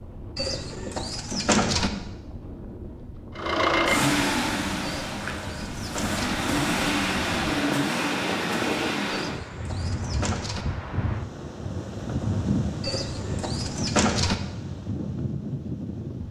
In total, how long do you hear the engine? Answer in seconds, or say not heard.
6 s.